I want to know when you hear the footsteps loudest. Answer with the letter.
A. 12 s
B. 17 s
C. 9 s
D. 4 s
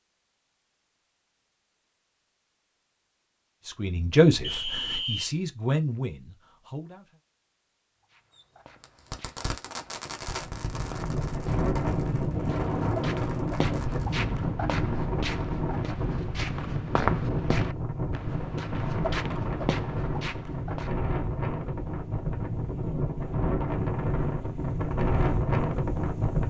B.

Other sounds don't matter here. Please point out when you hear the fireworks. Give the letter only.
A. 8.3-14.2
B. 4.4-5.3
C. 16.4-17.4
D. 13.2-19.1
A.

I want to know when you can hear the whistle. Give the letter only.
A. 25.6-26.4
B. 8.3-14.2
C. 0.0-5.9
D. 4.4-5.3
D.